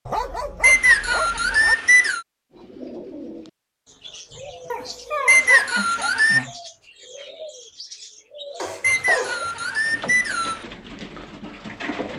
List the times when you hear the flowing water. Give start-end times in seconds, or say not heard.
not heard.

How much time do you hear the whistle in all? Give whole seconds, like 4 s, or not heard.
5 s.